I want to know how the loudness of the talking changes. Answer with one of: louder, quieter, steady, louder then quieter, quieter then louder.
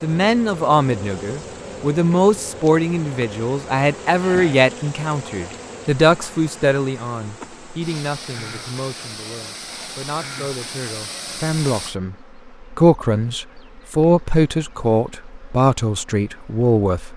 quieter then louder.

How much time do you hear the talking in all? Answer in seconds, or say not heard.
17 s.